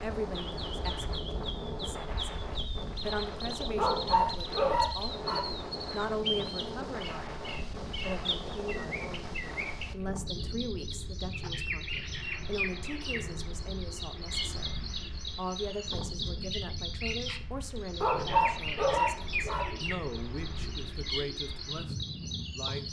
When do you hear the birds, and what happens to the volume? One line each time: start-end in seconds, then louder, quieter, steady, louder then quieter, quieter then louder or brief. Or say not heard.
0.0-22.8 steady.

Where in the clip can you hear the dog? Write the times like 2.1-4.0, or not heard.
3.8-5.5, 18.0-19.8.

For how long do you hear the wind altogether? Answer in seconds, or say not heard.
23 s.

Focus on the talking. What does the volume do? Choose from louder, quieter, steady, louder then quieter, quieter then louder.
steady.